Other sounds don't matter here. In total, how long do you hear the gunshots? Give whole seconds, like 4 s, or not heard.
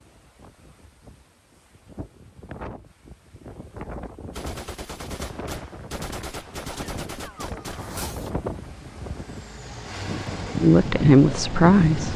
4 s.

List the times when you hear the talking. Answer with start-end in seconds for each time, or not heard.
10.6-12.1.